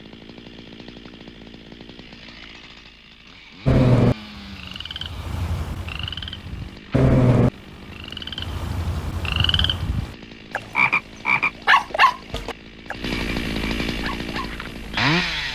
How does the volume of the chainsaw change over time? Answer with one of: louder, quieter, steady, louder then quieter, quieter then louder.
louder.